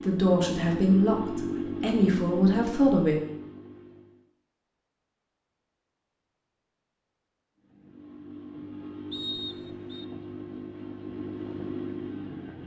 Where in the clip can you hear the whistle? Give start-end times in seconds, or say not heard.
9.1-10.1.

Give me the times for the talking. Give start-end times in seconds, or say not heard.
0.0-3.1.